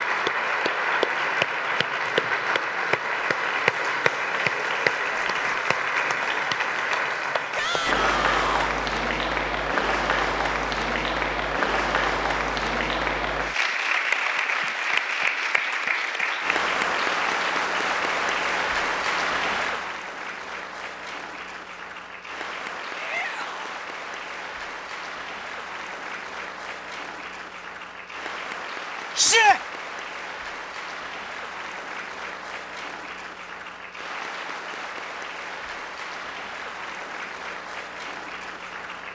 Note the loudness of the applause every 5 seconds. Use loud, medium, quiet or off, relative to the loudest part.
loud, loud, loud, loud, medium, medium, medium, medium.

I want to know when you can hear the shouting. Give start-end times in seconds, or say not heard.
7.5-8.7, 22.9-23.8, 29.1-29.6.